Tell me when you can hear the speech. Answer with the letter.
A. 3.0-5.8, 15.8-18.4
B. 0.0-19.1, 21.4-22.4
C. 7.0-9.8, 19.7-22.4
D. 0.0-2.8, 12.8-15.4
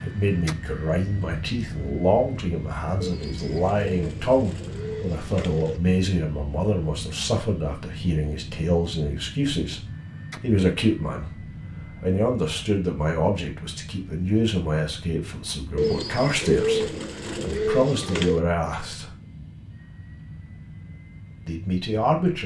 B.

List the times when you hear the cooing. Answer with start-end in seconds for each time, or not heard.
3.0-5.8, 15.8-18.4.